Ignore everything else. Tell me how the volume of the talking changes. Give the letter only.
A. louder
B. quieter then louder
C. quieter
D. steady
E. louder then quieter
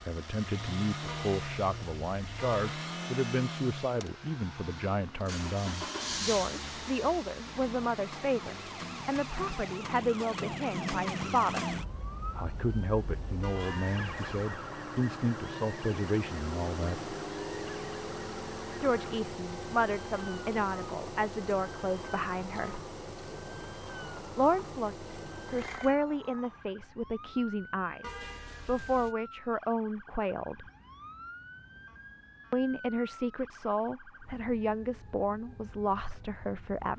D.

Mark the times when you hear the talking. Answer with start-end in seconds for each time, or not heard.
0.0-11.7, 12.3-17.1, 18.8-22.9, 24.4-30.6, 32.5-36.9.